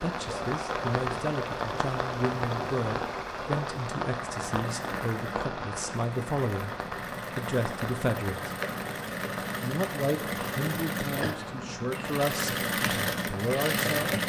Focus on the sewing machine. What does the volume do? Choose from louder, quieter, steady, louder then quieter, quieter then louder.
louder.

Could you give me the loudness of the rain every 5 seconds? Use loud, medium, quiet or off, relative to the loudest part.
loud, medium, medium.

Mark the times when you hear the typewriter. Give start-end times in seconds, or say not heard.
not heard.